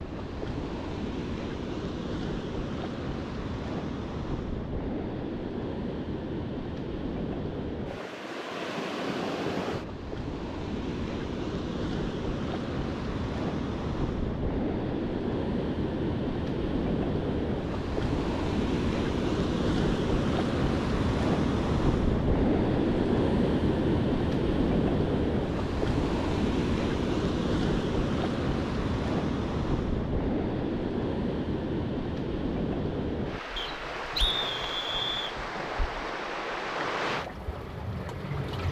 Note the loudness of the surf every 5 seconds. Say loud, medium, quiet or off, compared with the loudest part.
medium, medium, medium, loud, loud, loud, medium, medium.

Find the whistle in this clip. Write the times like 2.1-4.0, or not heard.
33.5-35.4.